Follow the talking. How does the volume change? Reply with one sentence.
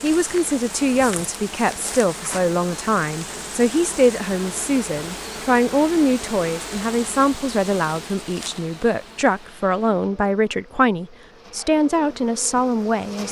The loudness of the talking stays about the same.